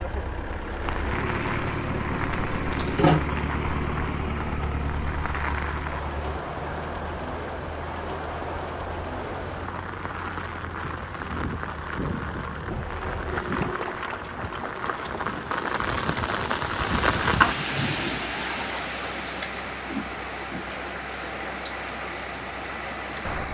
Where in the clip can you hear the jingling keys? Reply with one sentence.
The jingling keys can be heard from 2.3 to 3.2 s.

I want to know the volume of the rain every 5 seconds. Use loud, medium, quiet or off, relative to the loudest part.
medium, medium, medium, loud, medium.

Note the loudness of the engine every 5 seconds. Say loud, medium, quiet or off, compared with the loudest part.
loud, medium, medium, medium, medium.